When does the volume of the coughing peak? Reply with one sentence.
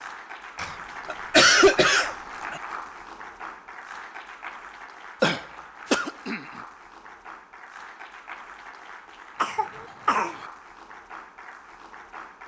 The loudest moment of the coughing is at 2 seconds.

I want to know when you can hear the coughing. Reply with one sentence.
The coughing can be heard from 0.6 to 2.6 s, from 5.2 to 6.5 s and from 9.3 to 10.3 s.